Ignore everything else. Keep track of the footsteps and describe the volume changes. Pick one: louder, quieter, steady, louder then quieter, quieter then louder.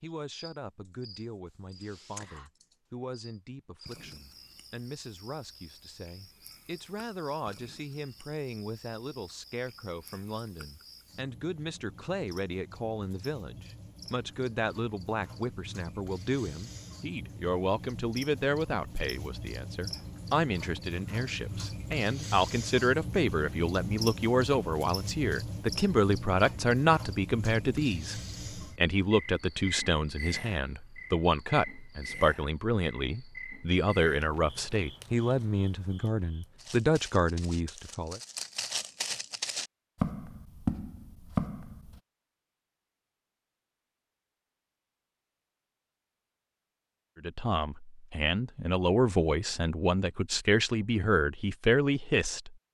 louder.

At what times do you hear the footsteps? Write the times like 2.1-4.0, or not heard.
36.5-42.0.